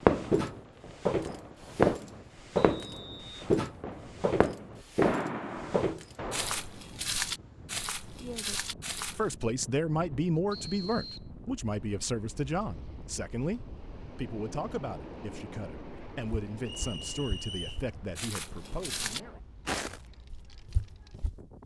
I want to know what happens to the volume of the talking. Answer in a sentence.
The volume of the talking goes down.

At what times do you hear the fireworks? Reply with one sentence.
The fireworks can be heard from 0.0 to 6.6 s.